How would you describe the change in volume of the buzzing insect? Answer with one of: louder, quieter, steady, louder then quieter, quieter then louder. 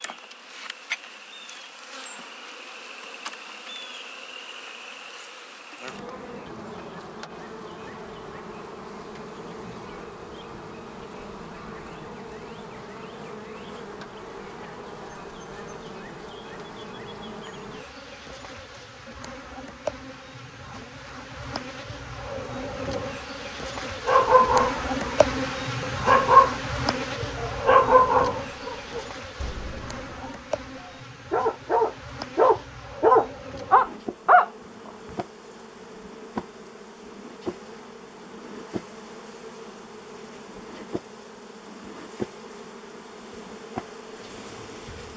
louder then quieter.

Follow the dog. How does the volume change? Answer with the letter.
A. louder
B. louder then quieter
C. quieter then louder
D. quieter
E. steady
C.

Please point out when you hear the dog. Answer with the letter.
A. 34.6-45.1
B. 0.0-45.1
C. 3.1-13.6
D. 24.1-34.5
D.